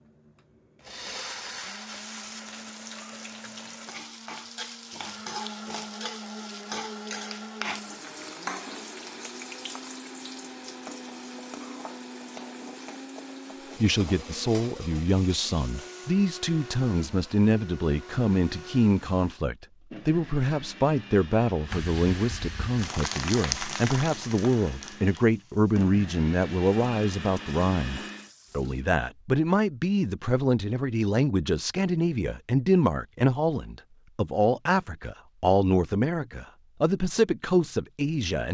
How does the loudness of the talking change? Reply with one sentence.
The loudness of the talking stays about the same.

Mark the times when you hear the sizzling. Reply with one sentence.
The sizzling can be heard from 1.9 to 16.1 s and from 21.7 to 28.9 s.